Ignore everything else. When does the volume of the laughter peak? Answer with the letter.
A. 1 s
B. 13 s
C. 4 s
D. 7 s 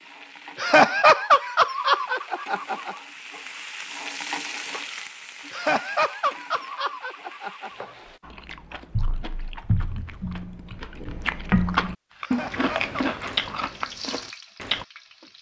A.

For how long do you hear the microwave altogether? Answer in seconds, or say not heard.
not heard.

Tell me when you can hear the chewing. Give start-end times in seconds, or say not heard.
8.2-14.8.